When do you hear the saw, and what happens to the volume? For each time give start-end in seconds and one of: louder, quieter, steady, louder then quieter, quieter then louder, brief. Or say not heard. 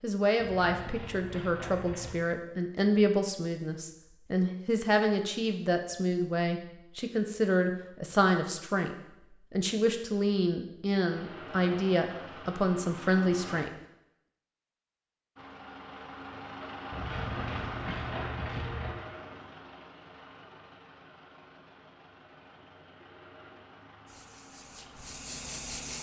not heard.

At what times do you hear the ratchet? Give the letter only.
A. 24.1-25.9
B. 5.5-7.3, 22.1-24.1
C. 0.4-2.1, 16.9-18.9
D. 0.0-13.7
C.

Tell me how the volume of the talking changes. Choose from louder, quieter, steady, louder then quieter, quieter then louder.
steady.